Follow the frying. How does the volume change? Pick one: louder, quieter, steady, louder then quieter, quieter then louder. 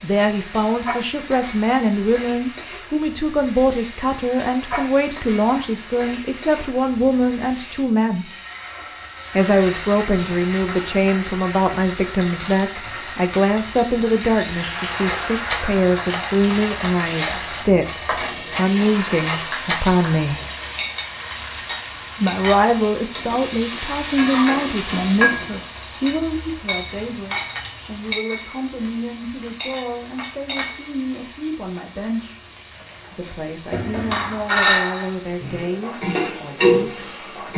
louder.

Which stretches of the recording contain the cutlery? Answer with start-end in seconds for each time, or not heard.
14.9-19.8.